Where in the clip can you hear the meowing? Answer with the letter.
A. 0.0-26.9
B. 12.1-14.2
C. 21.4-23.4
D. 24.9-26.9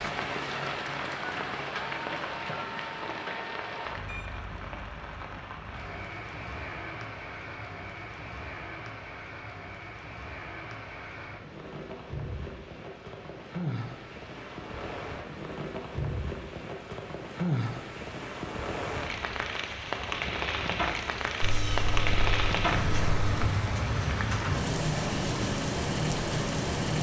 C.